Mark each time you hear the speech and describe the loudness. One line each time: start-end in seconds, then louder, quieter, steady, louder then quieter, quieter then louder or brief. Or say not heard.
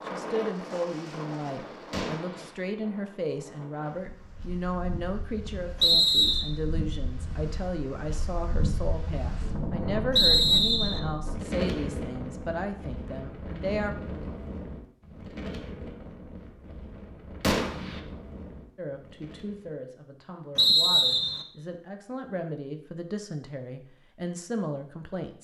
0.0-13.9 steady
18.8-25.3 louder.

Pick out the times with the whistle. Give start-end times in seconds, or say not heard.
5.8-6.5, 10.2-11.0, 20.6-21.4.